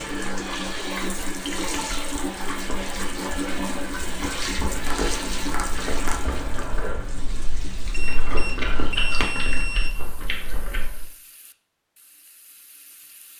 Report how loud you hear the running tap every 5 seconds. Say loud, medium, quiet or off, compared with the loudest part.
loud, medium, quiet.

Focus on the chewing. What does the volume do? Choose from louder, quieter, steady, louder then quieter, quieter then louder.
louder.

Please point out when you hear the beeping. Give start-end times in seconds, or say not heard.
7.9-9.9.